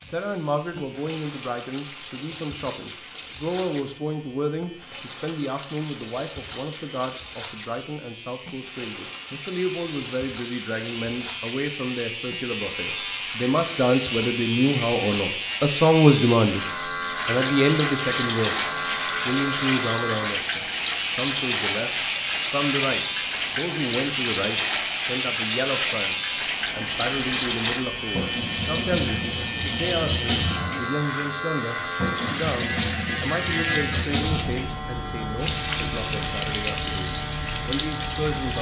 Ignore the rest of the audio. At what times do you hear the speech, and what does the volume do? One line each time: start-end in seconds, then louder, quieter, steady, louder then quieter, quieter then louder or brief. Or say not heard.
0.0-16.6 louder
17.2-38.5 quieter.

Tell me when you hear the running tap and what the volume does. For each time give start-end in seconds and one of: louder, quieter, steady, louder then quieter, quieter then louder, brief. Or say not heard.
0.0-38.5 louder.